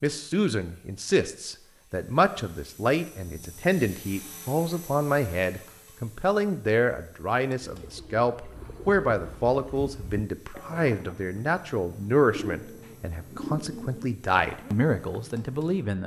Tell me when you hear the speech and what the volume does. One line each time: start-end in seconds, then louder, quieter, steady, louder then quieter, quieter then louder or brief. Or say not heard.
0.0-16.0 steady.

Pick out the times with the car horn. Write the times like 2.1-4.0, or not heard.
not heard.